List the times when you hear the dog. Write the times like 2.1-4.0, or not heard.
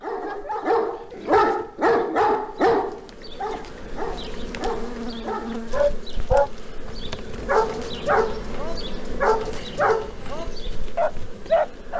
0.0-11.9.